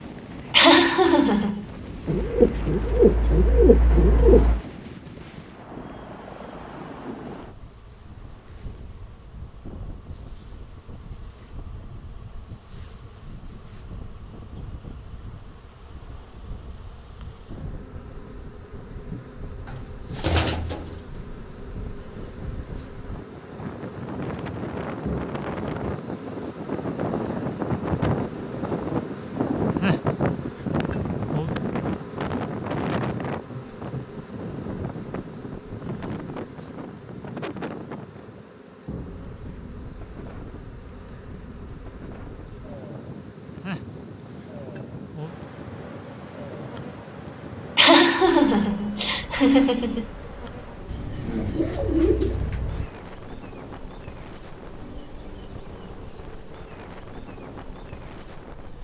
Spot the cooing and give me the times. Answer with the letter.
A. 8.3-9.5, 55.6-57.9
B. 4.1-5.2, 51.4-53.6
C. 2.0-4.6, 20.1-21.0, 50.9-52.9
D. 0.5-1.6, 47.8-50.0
C.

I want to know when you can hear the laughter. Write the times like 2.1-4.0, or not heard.
0.5-1.6, 47.8-50.0.